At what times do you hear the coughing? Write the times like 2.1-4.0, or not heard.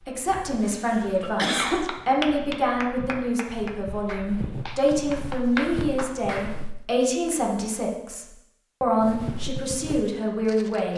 0.4-1.9.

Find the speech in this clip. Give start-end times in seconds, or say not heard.
0.0-10.9.